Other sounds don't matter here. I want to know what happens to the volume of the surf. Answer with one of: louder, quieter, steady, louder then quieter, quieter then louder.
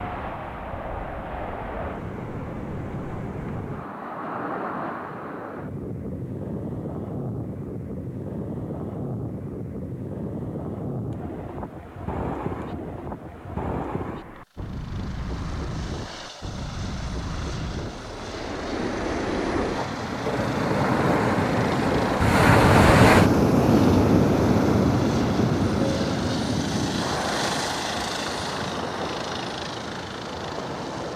louder then quieter.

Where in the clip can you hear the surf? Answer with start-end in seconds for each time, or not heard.
0.0-31.1.